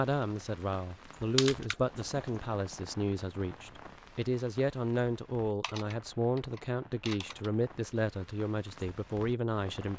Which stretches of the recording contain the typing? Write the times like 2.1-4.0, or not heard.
1.4-2.5, 5.6-7.5.